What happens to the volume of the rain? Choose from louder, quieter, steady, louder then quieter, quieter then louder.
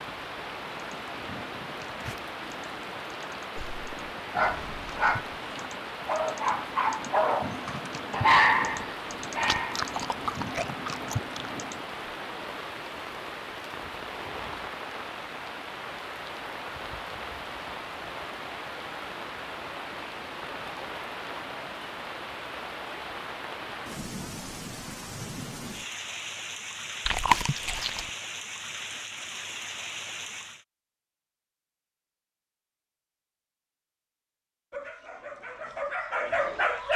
steady.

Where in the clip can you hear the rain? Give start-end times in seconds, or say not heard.
0.0-30.6.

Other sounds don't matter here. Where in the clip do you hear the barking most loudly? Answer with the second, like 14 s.
8 s.